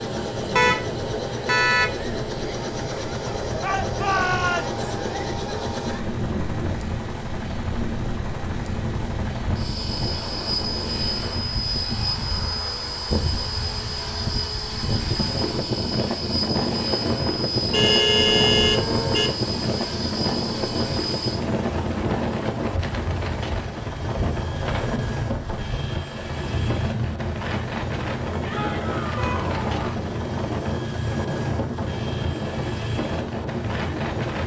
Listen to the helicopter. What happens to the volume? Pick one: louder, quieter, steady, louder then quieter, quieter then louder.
steady.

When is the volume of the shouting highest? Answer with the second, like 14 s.
4 s.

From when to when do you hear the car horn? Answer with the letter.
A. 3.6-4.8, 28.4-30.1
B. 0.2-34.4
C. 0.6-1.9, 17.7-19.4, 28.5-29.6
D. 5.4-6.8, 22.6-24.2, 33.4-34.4
C.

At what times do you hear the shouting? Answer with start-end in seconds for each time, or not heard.
3.6-4.8, 28.4-30.1.